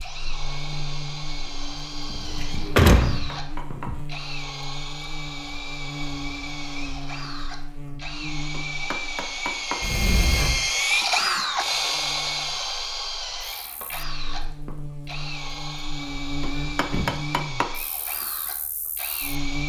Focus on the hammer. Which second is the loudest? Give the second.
17 s.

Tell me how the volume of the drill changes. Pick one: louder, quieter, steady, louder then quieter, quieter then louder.
louder then quieter.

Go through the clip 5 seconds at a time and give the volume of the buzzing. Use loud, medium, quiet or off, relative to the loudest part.
loud, loud, medium, loud.